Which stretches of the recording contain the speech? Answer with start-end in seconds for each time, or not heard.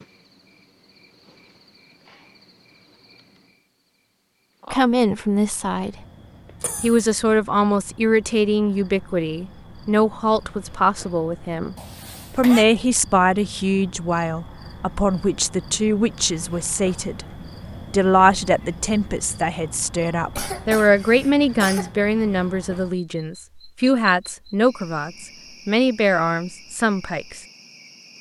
4.7-6.0, 6.8-11.8, 12.3-17.2, 17.9-27.4.